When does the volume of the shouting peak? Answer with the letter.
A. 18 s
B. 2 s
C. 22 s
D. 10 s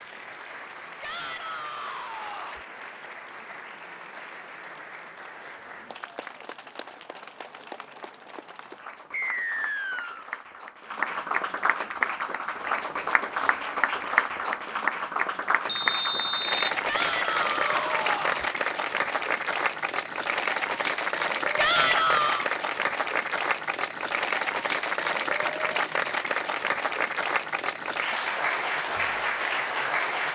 C.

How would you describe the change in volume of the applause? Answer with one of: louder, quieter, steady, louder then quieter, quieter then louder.
louder.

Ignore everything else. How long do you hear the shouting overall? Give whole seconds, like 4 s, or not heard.
4 s.